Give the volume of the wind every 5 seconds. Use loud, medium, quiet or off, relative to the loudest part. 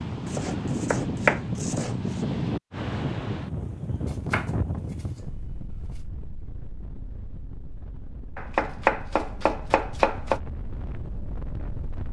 loud, quiet, medium.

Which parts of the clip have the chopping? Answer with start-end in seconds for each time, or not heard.
0.2-1.9, 4.0-6.0, 8.3-10.4.